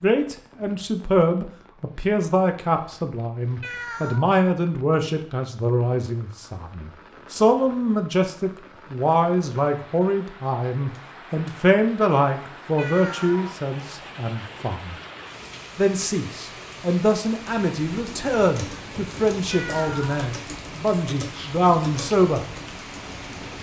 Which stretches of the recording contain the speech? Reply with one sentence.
You can hear the speech from 0.0 to 14.9 s and from 15.8 to 22.4 s.